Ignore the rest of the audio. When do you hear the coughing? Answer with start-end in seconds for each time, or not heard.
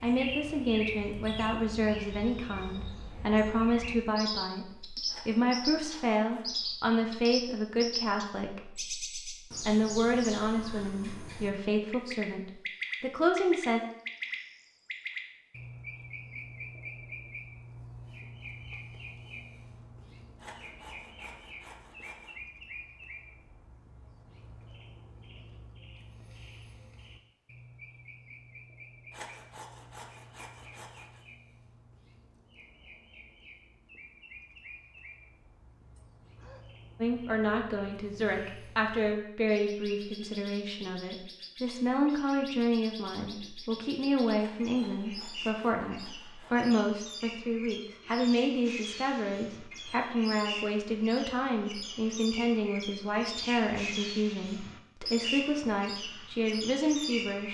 36.0-36.6.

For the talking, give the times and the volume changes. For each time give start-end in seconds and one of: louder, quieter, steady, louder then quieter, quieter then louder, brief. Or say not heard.
0.0-13.8 steady
37.0-57.4 steady.